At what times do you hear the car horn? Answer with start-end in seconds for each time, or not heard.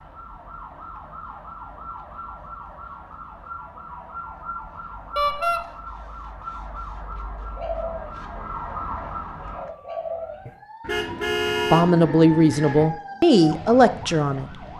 5.2-5.6, 10.4-11.9.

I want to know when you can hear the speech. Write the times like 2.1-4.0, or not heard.
11.7-14.6.